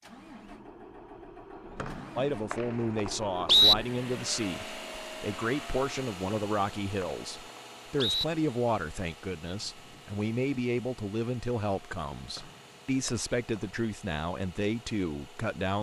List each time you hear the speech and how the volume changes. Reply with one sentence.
You can hear the speech from 2.1 to 15.7 s, at a steady volume.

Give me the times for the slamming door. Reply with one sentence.
You can't hear the slamming door here.